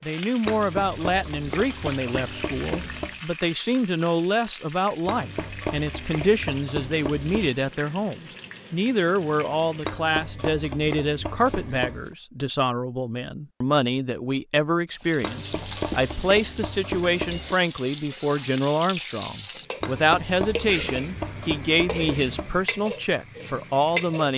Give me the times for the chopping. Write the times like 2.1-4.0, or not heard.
0.5-3.2, 5.0-7.5, 9.8-12.2, 15.2-17.6, 19.8-22.6.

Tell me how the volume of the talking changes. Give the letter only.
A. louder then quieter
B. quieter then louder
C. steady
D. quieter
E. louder
C.